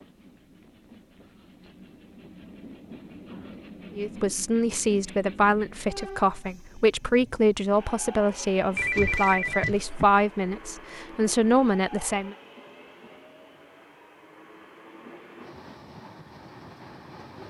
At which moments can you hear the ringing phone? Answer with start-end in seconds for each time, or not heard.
8.8-10.1.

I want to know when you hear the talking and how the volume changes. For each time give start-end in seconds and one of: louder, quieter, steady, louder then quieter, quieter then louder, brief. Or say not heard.
4.0-12.3 steady.